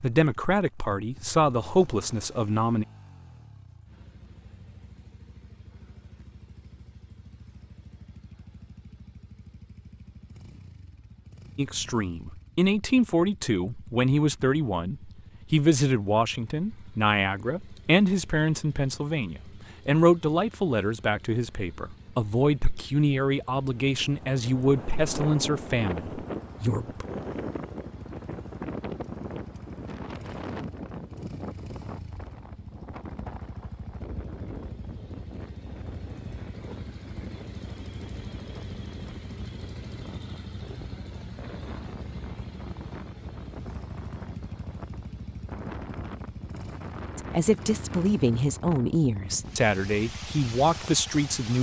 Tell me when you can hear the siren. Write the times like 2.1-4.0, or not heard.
not heard.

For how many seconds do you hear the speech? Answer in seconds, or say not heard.
23 s.